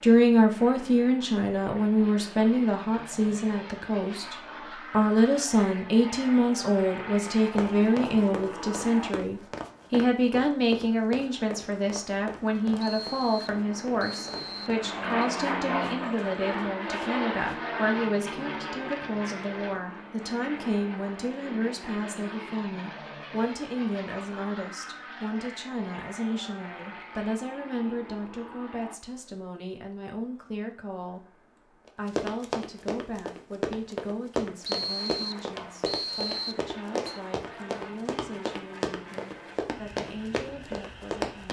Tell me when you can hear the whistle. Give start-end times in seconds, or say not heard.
12.8-15.3, 34.6-37.2.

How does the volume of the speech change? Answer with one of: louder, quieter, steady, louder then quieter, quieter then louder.
quieter.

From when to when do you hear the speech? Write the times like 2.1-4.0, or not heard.
0.0-41.4.